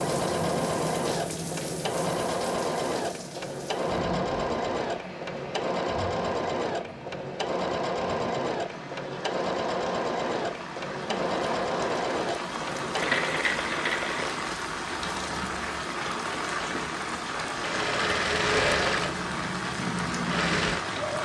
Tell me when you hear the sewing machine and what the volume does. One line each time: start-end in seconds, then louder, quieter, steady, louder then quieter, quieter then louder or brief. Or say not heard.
0.0-21.2 steady.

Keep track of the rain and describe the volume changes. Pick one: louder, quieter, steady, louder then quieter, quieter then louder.
quieter then louder.